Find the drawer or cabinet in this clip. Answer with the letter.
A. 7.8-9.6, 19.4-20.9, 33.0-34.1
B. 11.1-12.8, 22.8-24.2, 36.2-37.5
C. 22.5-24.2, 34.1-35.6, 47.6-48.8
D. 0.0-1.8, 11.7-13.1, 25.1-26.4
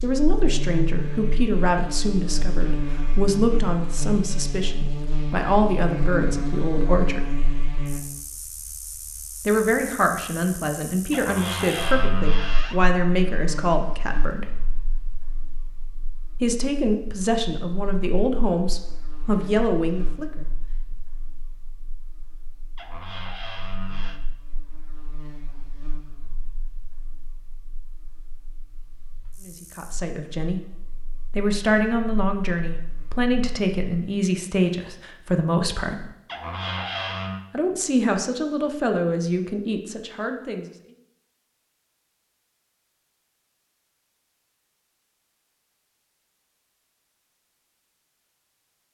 B.